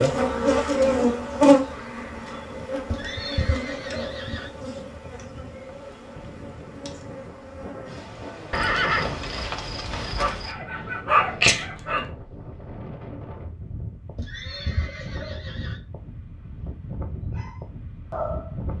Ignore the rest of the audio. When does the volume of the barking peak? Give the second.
11 s.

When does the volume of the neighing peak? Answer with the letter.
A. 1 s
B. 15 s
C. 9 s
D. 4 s
C.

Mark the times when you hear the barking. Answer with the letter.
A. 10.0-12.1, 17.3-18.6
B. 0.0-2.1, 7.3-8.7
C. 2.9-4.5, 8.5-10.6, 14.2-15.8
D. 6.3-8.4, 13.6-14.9
A.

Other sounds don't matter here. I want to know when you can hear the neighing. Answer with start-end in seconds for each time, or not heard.
2.9-4.5, 8.5-10.6, 14.2-15.8.